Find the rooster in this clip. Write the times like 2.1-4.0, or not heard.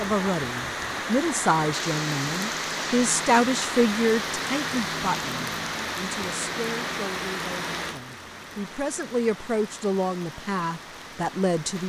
not heard.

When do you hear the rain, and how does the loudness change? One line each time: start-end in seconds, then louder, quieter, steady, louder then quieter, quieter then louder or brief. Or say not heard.
0.0-11.8 quieter.